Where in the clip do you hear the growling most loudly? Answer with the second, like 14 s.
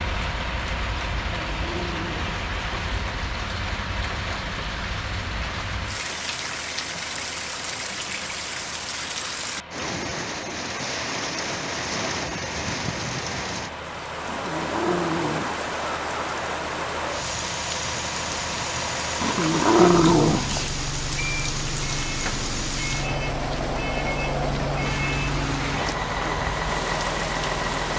20 s.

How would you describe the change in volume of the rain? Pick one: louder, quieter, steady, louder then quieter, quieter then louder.
steady.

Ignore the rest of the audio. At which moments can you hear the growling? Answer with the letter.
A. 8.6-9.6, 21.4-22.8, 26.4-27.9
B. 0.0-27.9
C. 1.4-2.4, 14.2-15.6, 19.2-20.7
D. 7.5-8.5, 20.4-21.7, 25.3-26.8
C.